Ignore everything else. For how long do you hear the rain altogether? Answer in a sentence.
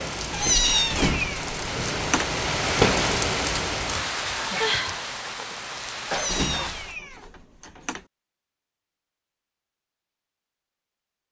The rain can be heard for 7 seconds in total.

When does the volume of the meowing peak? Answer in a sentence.
The loudest moment of the meowing is at 1 second.